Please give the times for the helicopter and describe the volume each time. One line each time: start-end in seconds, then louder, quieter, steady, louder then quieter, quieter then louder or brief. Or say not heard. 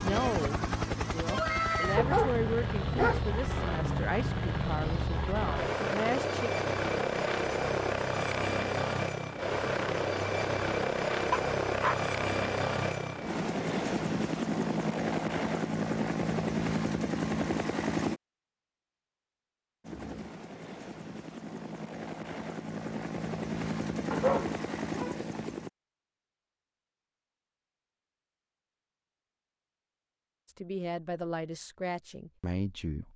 0.0-18.2 steady
19.8-25.7 louder.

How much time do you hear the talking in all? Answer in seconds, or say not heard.
9 s.